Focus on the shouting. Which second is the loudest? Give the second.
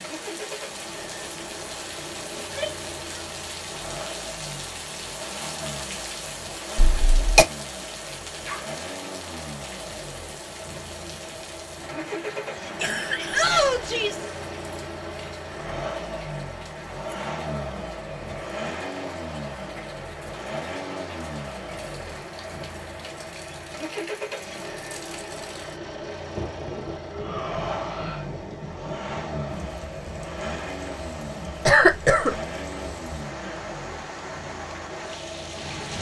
14 s.